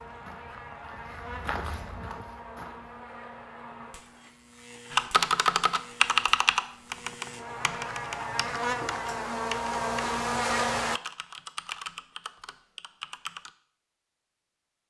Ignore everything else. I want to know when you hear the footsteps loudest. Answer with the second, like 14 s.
2 s.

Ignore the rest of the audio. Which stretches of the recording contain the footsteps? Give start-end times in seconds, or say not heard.
0.0-3.0.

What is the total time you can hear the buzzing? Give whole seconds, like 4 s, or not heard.
11 s.